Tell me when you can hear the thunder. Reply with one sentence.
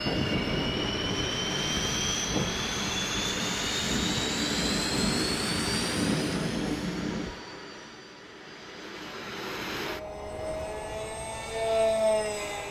The thunder can be heard from 3.9 to 7.3 s.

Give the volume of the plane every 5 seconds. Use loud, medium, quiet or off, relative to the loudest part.
loud, medium, loud.